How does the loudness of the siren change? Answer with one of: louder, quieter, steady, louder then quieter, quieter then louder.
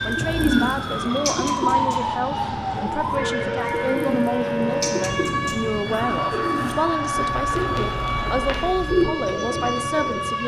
steady.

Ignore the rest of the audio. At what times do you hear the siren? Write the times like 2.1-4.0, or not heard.
0.0-10.4.